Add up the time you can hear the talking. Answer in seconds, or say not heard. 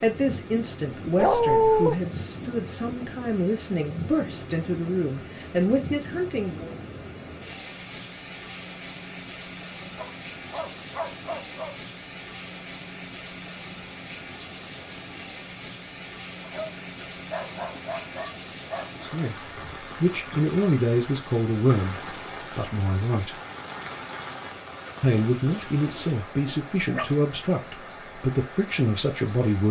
16 s.